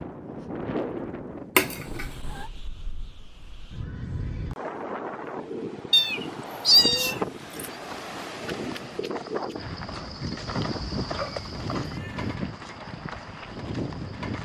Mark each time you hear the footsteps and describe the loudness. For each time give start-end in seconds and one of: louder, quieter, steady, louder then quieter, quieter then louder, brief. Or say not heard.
7.7-14.4 louder then quieter.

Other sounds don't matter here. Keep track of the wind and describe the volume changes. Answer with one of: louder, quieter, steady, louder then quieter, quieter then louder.
steady.